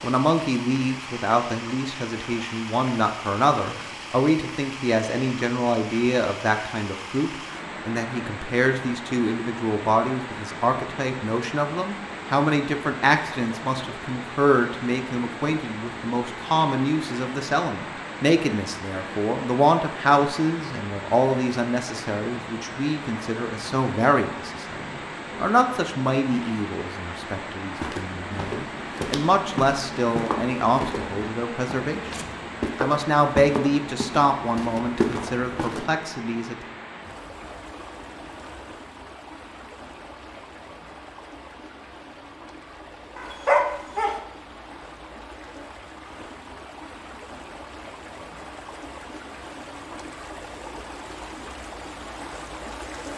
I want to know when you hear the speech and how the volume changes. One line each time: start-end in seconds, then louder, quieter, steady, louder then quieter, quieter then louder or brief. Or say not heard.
0.0-36.5 steady.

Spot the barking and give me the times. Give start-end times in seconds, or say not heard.
43.1-44.1.